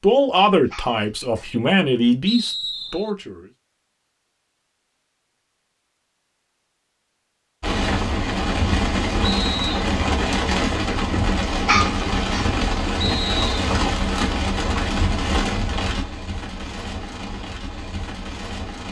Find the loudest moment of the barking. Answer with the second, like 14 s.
12 s.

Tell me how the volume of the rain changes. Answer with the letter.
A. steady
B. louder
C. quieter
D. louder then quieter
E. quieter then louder
C.